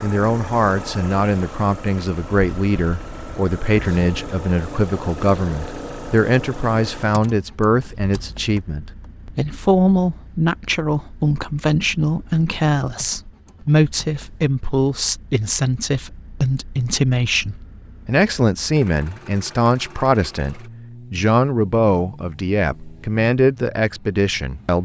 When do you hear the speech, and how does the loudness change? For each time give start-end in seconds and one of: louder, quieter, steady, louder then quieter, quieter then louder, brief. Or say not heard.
0.0-24.8 steady.